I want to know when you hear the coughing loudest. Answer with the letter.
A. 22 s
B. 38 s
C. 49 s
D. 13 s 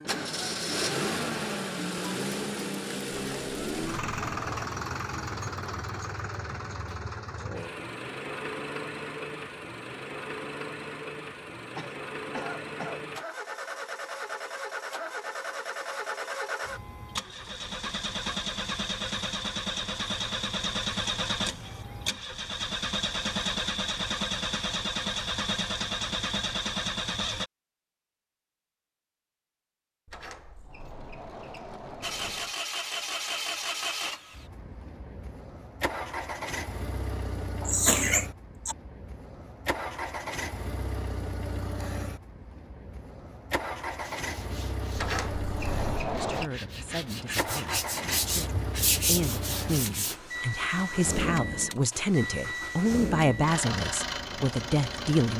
B.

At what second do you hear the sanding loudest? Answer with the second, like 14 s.
49 s.